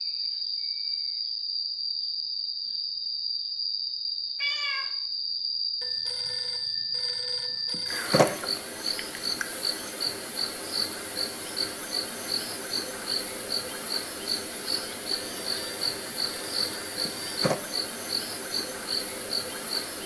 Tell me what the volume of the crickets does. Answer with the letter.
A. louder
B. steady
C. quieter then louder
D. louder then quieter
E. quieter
B.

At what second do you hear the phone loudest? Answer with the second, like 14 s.
8 s.